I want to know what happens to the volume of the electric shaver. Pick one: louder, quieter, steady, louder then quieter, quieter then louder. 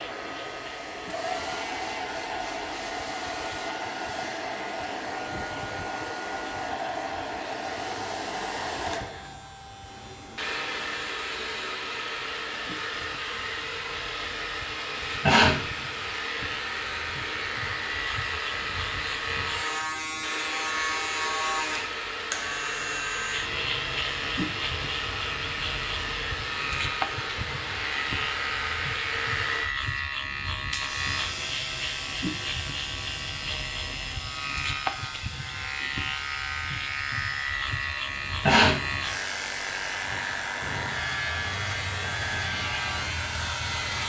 louder.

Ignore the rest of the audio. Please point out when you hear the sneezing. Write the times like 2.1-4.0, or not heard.
15.2-15.7, 38.4-38.9.